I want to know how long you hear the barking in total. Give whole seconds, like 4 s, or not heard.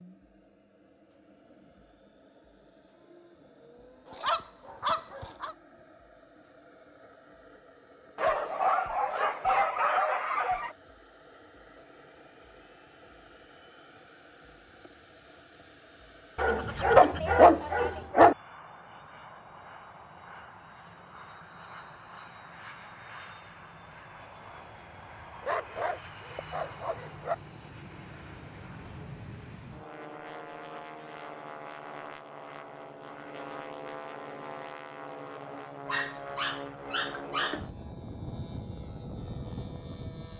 10 s.